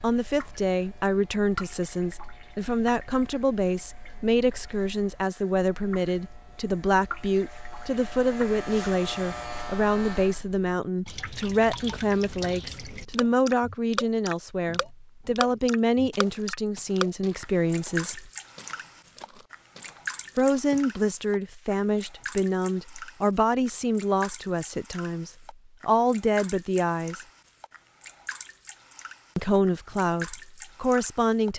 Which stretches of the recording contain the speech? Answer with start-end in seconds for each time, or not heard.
0.0-18.3, 20.4-27.2, 29.4-31.5.